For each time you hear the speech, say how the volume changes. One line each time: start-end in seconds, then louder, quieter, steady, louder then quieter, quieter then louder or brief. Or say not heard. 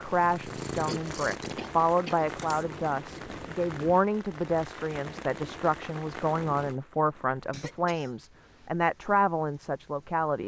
0.0-10.4 steady.